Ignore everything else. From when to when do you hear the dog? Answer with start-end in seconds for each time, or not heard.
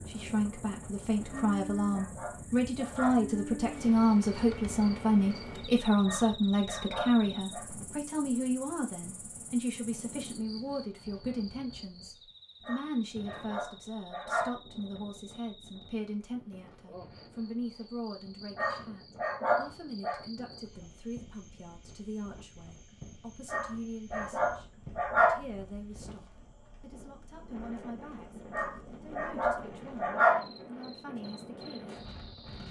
1.3-3.2, 6.0-7.7, 12.7-14.6, 18.6-20.2, 23.5-25.4, 28.5-30.4.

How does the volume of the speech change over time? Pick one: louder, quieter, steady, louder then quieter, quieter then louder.
quieter.